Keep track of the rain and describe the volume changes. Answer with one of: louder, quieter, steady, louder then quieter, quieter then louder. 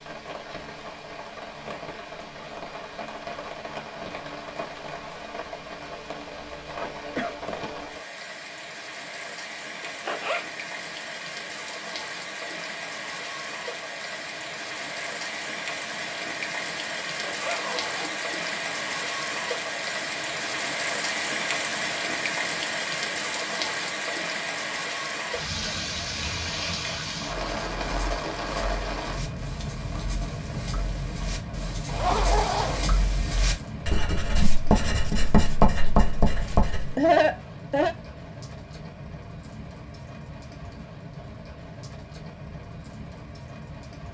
louder then quieter.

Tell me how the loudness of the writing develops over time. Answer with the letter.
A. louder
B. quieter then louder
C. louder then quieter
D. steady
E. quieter
A.